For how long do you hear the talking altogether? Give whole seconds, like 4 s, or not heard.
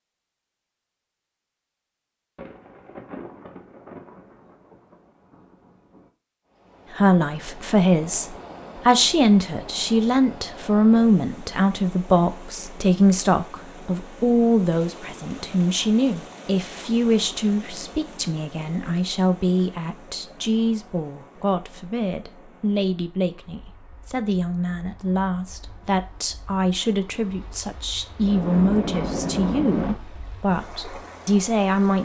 25 s.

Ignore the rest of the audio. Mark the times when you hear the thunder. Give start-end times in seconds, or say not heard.
2.4-6.1, 28.2-29.9.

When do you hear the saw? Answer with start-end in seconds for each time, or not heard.
not heard.